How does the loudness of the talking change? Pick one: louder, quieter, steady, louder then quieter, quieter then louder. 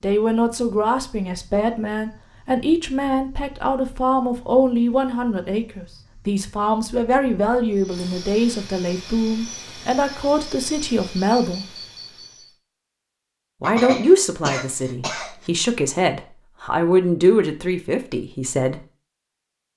steady.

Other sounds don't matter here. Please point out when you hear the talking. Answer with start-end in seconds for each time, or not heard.
0.0-11.7, 13.6-18.8.